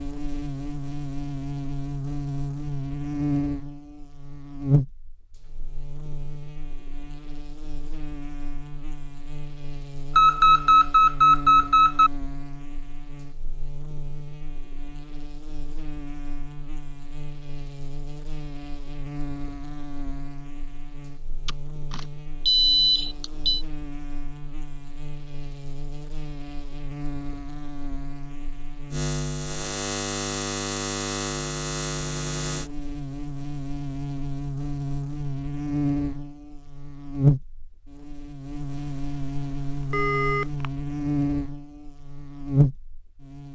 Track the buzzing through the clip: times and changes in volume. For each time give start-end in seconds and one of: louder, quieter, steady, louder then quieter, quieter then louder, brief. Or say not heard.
0.0-43.5 quieter then louder.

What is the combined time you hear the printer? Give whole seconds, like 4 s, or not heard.
not heard.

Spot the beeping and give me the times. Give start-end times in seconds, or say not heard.
10.2-12.1, 21.4-23.6, 39.0-40.6.